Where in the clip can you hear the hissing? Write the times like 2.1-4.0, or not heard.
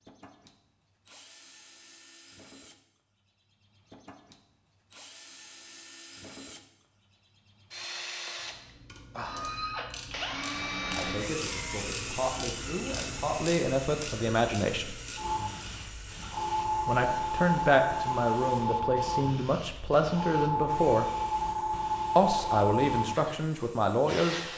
15.2-24.5.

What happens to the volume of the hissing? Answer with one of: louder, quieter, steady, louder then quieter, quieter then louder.
steady.